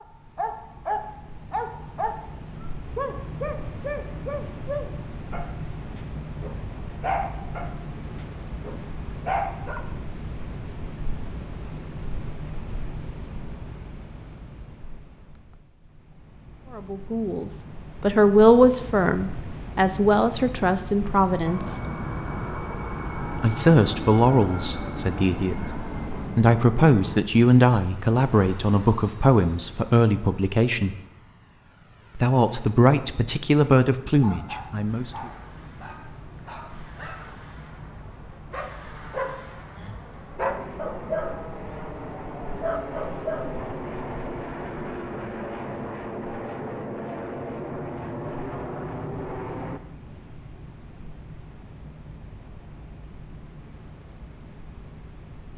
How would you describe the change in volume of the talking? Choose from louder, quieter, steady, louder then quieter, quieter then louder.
steady.